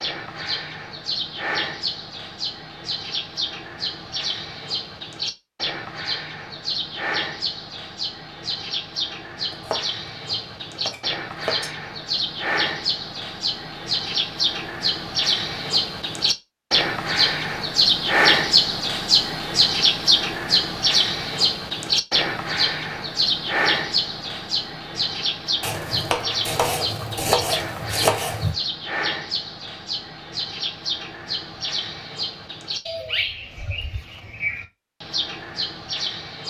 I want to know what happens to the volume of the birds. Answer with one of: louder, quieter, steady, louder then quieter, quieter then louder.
louder then quieter.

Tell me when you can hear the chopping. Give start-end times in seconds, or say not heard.
9.5-11.7, 25.6-28.6.